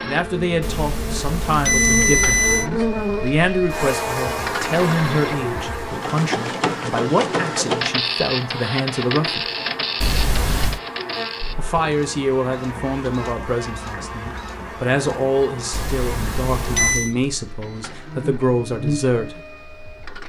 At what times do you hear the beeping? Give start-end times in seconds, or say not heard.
0.6-2.7, 10.0-10.8, 15.7-17.1.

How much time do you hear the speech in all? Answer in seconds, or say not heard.
17 s.